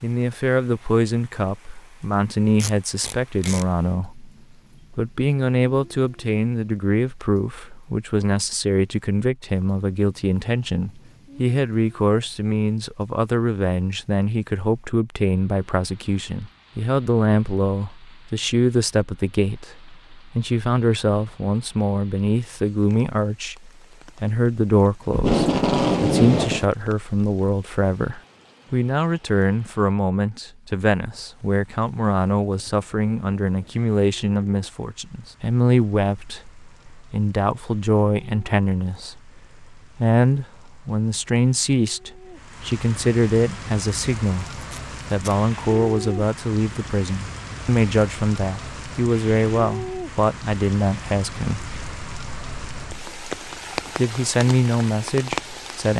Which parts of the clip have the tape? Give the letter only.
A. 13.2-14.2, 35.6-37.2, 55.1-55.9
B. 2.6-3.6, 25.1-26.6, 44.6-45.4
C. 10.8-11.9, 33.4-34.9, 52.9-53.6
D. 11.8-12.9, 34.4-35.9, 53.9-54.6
B.